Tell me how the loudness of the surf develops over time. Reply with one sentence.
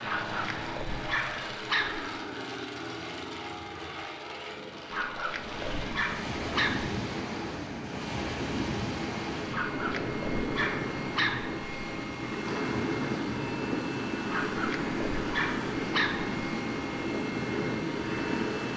The volume of the surf stays about the same.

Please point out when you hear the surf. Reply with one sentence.
You can hear the surf from 5.2 to 18.7 s.